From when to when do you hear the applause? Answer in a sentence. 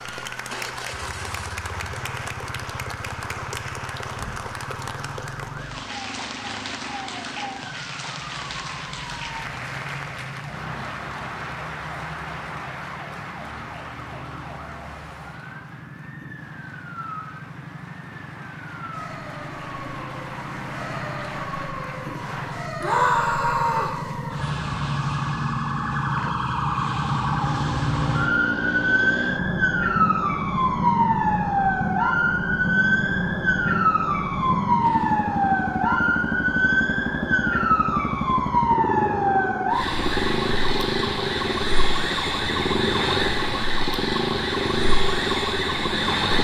You can hear the applause from 0.0 to 22.7 s.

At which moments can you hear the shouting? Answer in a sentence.
The shouting can be heard from 22.8 to 24.0 s.